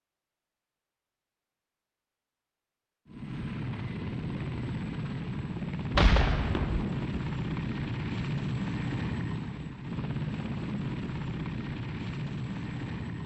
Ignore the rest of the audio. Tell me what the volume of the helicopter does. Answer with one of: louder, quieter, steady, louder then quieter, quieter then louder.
steady.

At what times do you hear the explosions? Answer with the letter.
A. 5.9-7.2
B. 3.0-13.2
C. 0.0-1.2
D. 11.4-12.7
A.